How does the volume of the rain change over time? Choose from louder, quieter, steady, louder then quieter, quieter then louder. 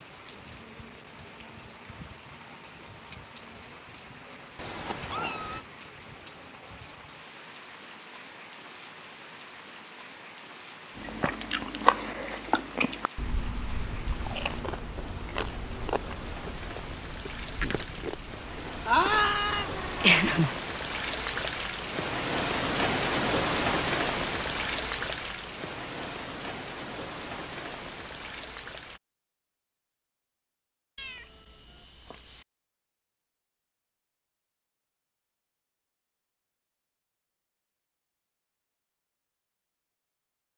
louder.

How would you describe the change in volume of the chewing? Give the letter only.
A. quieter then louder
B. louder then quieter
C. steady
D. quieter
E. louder
D.